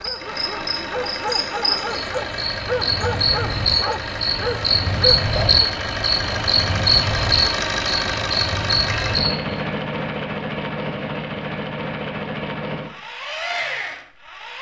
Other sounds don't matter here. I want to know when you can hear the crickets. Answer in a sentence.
The crickets can be heard from 0.0 to 9.6 s.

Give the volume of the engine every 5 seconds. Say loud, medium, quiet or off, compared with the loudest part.
medium, loud, loud.